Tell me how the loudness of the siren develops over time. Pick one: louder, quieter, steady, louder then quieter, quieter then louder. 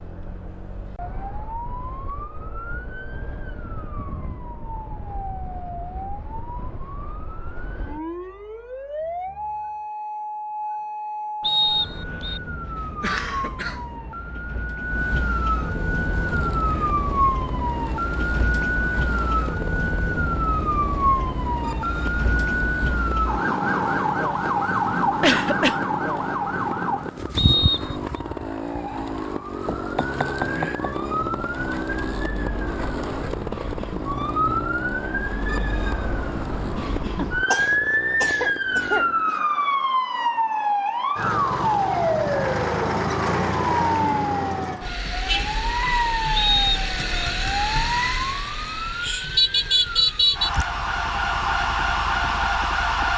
louder.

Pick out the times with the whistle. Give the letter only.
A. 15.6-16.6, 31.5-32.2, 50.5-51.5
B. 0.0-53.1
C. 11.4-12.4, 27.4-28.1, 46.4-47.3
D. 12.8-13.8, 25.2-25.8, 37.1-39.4
C.